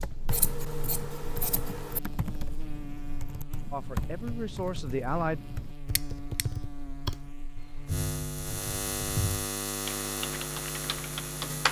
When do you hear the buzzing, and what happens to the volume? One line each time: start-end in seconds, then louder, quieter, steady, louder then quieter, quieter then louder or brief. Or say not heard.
0.0-11.6 louder.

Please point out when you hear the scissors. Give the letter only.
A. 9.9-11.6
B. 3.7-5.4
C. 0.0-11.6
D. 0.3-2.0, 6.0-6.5
D.